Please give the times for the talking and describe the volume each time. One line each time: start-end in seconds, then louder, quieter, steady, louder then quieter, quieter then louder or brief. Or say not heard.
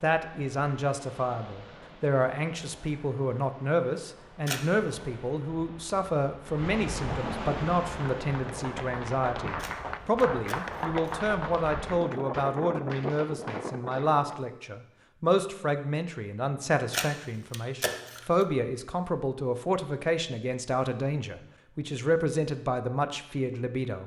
0.0-24.0 steady.